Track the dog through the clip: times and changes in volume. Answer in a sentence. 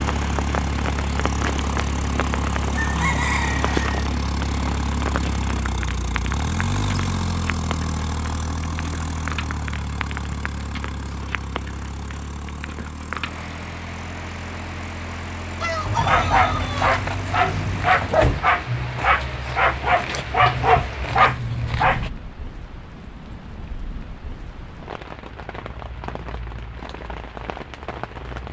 You can hear the dog from 15.8 to 22.1 s, at a steady volume.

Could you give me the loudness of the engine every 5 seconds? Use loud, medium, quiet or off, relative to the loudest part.
loud, loud, medium, medium, off, off.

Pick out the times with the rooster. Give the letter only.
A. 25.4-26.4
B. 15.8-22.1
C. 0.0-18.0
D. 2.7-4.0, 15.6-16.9
D.